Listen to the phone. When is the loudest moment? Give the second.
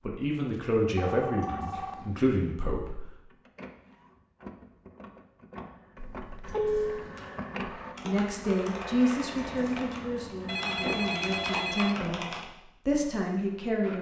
7 s.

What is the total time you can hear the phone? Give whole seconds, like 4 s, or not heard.
4 s.